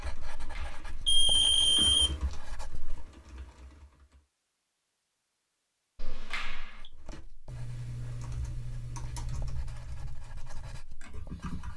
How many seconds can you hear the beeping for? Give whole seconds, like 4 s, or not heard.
3 s.